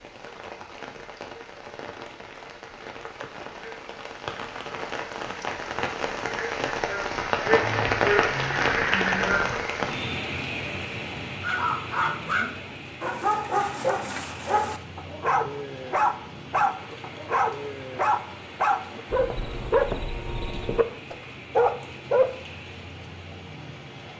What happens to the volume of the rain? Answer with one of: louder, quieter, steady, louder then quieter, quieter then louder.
louder then quieter.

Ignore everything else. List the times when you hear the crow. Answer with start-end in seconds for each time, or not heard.
not heard.